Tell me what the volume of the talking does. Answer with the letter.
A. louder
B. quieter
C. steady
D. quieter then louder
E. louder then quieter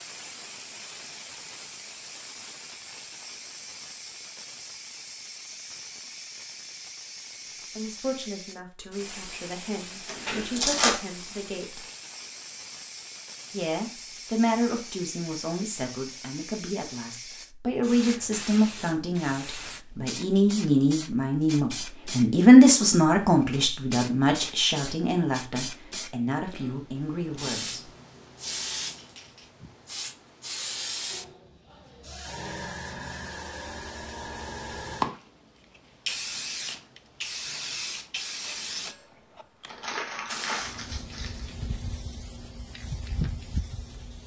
E.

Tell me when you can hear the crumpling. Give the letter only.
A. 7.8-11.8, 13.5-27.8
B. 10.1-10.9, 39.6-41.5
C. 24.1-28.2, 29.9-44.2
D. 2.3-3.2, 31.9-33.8
B.